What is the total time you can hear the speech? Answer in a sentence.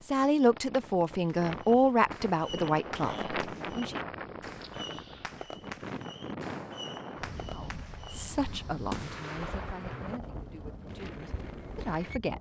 You can hear the speech for 9 seconds altogether.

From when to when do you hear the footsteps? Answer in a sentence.
The footsteps can't be heard in this clip.